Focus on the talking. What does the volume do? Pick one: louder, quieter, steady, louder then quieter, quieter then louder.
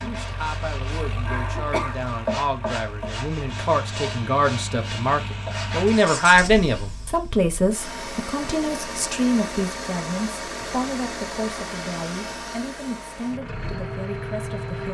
louder then quieter.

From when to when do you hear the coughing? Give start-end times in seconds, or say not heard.
0.8-2.1.